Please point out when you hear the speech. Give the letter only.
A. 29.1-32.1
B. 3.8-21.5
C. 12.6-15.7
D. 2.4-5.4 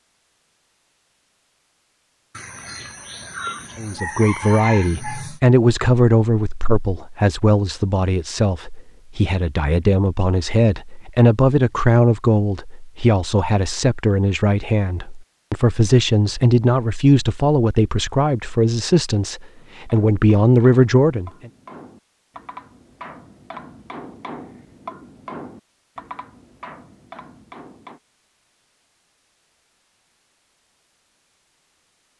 B.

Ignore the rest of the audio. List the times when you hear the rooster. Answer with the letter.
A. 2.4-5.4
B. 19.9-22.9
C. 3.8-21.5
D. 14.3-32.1
A.